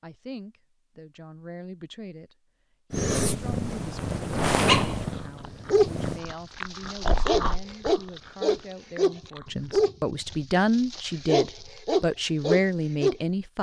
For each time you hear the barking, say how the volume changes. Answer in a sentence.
You can hear the barking from 4.7 to 13.2 s, at a steady volume.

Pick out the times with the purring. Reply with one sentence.
You can hear the purring from 2.9 to 6.2 s.